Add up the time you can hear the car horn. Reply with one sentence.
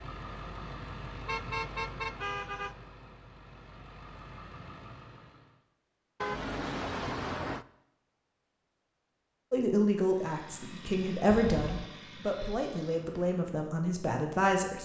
The car horn can be heard for 3 seconds in total.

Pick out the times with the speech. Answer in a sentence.
The speech can be heard from 9.5 to 14.7 s.